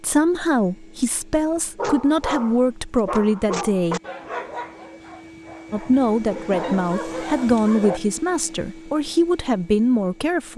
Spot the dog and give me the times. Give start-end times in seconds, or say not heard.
1.8-8.0.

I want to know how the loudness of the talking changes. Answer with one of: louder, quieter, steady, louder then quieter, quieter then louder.
steady.